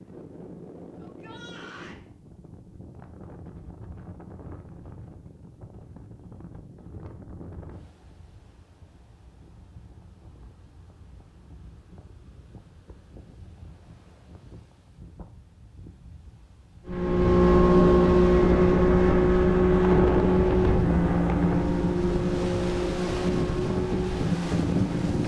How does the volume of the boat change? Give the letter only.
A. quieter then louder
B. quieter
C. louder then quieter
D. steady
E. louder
B.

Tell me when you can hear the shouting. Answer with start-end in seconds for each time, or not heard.
1.0-2.0.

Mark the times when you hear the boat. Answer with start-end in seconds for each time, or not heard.
16.9-25.2.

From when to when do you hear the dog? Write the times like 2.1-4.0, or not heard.
not heard.